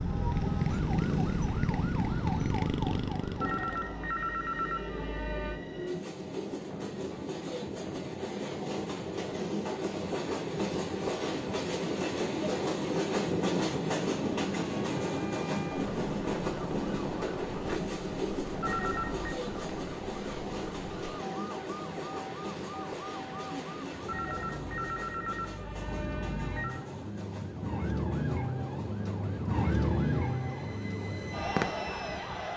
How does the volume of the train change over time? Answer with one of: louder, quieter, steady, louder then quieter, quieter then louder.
louder then quieter.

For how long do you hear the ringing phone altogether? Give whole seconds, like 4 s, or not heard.
6 s.